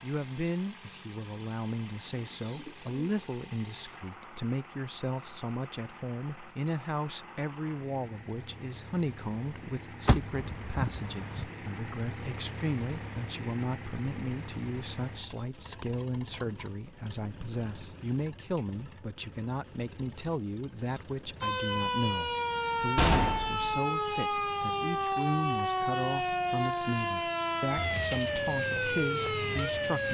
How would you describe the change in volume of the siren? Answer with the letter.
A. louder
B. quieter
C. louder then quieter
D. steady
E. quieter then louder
D.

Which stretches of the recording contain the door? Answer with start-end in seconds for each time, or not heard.
10.1-11.4, 22.9-23.8.